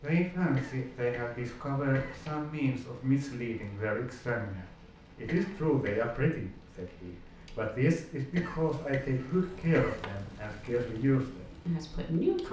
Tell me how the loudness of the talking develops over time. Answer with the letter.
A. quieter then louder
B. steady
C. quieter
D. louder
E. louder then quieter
B.